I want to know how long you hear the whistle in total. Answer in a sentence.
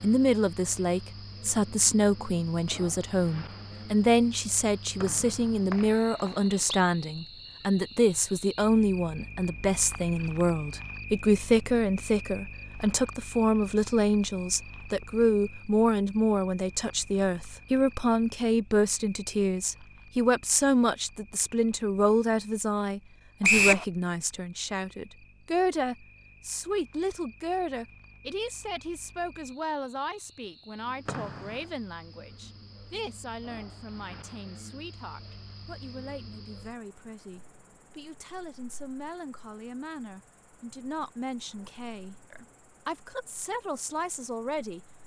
You can hear the whistle for 3 seconds altogether.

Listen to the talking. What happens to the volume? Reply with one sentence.
The loudness of the talking goes down.